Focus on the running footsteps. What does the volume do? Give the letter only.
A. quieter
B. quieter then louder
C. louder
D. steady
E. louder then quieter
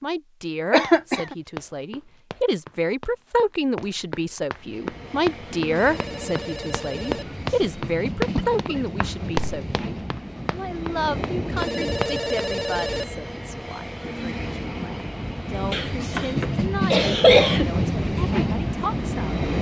E.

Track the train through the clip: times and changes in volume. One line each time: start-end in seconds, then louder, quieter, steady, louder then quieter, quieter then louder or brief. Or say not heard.
4.6-19.5 louder.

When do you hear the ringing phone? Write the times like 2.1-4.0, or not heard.
5.8-7.2, 11.6-13.1.